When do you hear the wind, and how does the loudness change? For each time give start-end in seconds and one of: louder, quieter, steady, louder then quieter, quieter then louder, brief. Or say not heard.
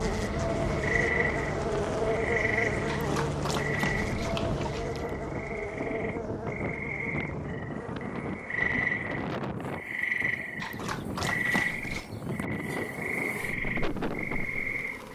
0.0-15.0 steady.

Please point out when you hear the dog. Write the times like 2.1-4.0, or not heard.
2.9-5.2, 10.6-12.1.